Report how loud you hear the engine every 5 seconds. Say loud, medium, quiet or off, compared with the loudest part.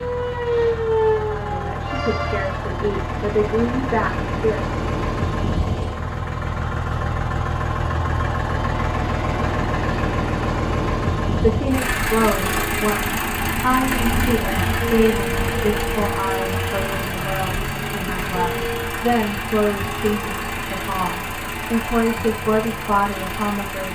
medium, loud, loud, loud, medium.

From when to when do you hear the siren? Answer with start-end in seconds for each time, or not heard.
0.0-2.7.